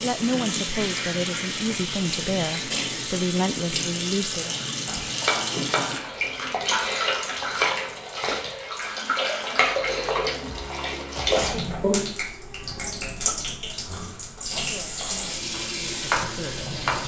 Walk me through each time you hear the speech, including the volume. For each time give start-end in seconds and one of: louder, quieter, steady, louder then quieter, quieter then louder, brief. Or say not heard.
0.0-4.5 steady
14.6-16.8 brief.